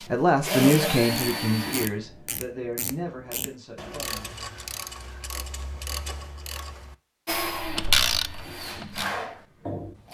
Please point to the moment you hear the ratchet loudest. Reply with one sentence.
The volume of the ratchet peaks at 8 seconds.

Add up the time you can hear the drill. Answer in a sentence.
The drill can be heard for 5 seconds in total.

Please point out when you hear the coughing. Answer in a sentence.
The coughing can't be heard in this clip.